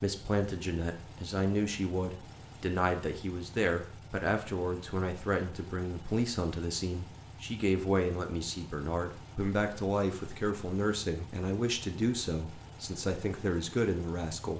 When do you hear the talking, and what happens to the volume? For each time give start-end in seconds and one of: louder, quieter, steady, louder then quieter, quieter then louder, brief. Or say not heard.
0.0-14.5 steady.